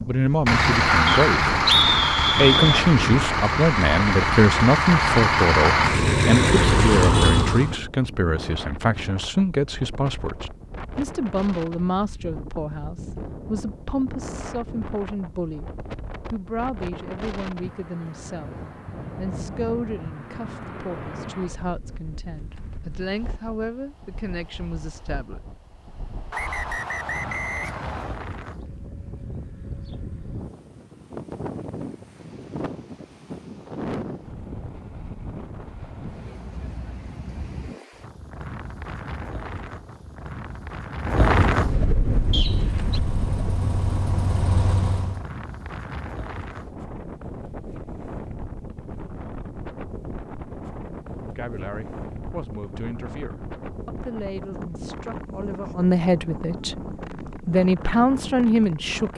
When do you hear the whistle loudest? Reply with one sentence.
The volume of the whistle peaks at 2 seconds.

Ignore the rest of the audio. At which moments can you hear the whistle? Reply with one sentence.
You can hear the whistle from 1.1 to 2.9 s, from 26.3 to 28.2 s and from 42.3 to 43.0 s.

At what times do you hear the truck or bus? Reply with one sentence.
The truck or bus can be heard from 0.0 to 7.8 s and from 42.0 to 45.2 s.